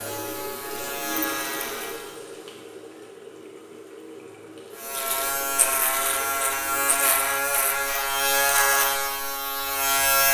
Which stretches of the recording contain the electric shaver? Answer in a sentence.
The electric shaver can be heard from 0.0 to 2.2 s and from 4.8 to 10.2 s.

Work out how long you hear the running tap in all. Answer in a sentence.
You can hear the running tap for 7 seconds altogether.